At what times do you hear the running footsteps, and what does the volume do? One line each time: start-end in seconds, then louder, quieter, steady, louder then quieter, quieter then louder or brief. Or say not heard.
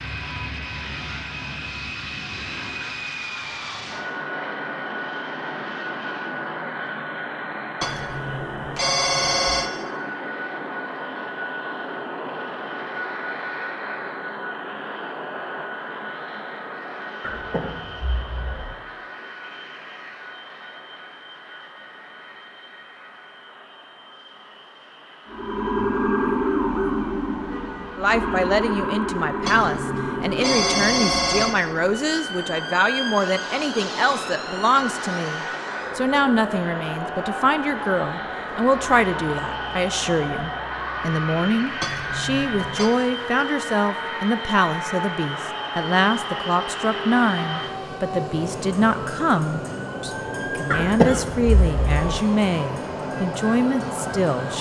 not heard.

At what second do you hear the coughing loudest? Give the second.
51 s.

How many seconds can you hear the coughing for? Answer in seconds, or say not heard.
3 s.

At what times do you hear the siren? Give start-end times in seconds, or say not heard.
25.2-54.5.